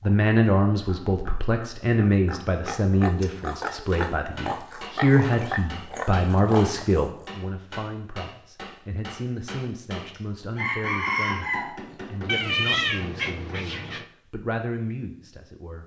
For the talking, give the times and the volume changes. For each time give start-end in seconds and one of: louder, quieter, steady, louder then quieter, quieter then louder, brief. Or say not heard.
0.0-15.8 quieter.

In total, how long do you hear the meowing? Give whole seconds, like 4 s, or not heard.
2 s.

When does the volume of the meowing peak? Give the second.
13 s.